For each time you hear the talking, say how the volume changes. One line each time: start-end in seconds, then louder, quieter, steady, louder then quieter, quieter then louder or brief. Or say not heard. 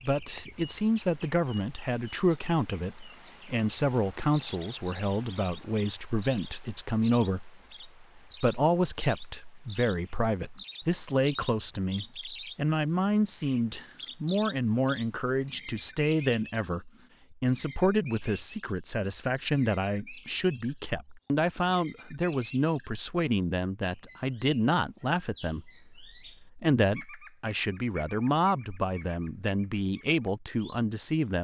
0.0-31.3 steady.